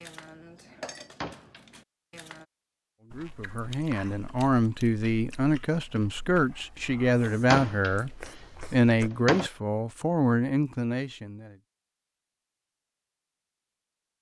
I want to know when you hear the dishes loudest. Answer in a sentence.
The volume of the dishes peaks at 1 second.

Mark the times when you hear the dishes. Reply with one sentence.
The dishes can be heard from 0.0 to 2.5 s.